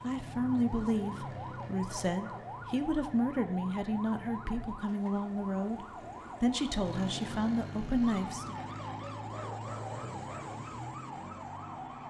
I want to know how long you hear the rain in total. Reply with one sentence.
You can't hear the rain here.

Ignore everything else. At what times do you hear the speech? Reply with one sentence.
The speech can be heard from 0.0 to 8.6 s.